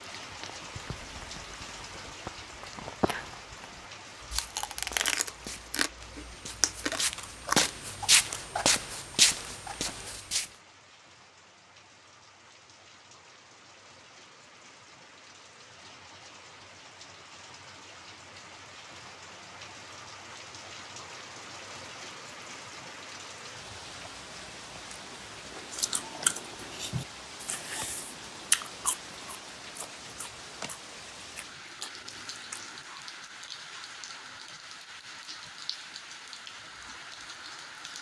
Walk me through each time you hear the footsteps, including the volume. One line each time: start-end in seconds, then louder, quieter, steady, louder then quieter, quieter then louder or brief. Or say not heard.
4.2-10.4 louder.